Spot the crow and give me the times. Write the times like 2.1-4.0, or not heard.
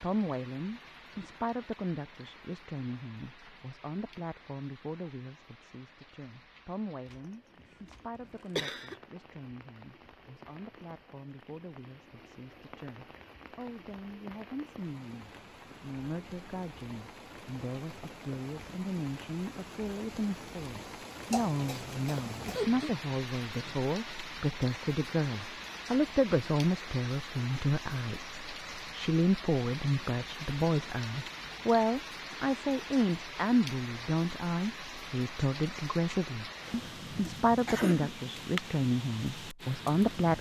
not heard.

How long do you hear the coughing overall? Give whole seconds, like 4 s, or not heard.
4 s.